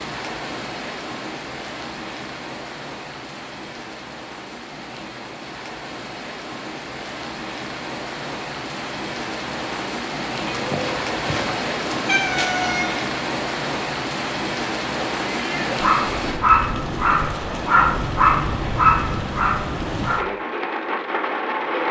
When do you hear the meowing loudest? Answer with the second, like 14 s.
12 s.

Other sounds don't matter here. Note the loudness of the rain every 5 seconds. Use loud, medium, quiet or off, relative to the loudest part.
medium, medium, loud, loud, loud.